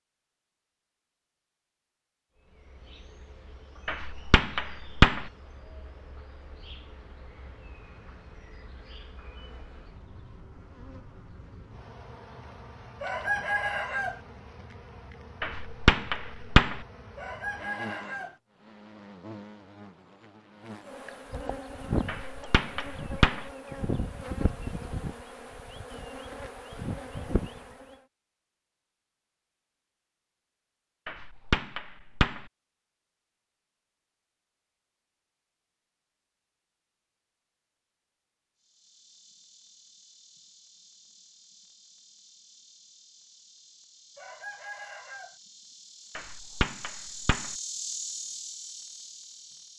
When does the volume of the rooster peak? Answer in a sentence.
The loudest moment of the rooster is at 13 seconds.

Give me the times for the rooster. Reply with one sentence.
You can hear the rooster from 13.0 to 14.2 s, from 17.1 to 18.4 s and from 44.1 to 45.4 s.